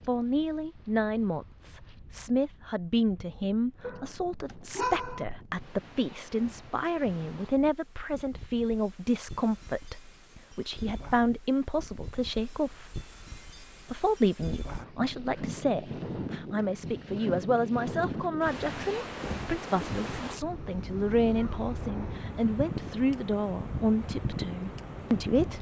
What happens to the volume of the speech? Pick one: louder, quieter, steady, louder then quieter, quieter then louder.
steady.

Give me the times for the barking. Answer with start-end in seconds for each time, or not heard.
3.8-5.3.